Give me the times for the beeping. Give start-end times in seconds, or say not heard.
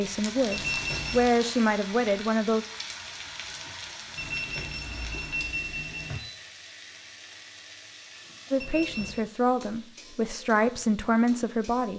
0.5-1.3, 4.2-6.2, 8.6-9.2.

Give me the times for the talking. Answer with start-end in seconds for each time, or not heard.
0.0-2.6, 8.5-11.9.